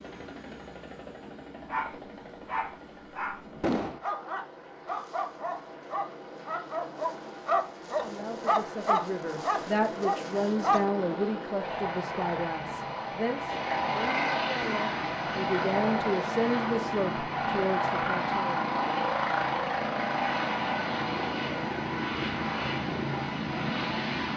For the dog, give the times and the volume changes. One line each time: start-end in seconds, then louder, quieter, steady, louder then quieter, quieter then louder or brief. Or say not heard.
1.6-10.8 louder.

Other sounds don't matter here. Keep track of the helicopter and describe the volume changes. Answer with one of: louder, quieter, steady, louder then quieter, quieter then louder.
louder.